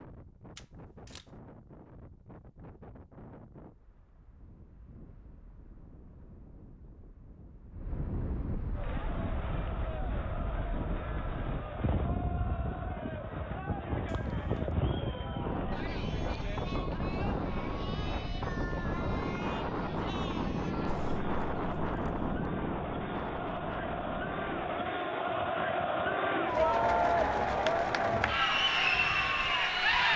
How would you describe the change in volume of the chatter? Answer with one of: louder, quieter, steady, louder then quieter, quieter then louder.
louder.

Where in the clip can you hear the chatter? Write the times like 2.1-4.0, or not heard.
8.7-30.1.